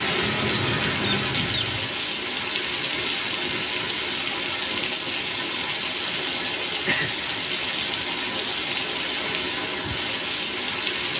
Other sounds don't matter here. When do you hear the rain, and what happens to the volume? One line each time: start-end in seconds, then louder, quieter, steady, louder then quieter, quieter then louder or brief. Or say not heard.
0.0-11.1 steady.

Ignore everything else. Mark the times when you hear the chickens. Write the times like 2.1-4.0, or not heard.
0.2-1.9.